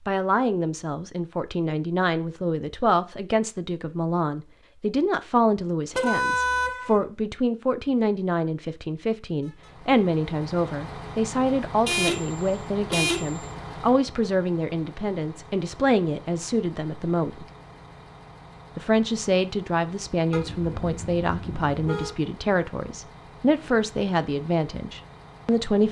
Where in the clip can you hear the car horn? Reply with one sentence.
The car horn can be heard from 5.9 to 7.0 s, from 11.8 to 13.4 s and from 20.3 to 22.1 s.